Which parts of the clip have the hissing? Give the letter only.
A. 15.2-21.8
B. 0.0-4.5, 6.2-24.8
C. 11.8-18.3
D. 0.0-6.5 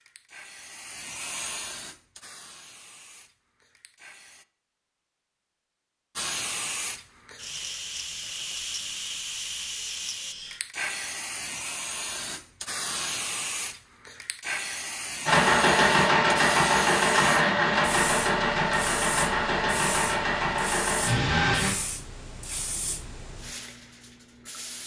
B.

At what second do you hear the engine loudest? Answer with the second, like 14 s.
16 s.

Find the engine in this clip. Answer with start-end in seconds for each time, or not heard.
15.2-21.8.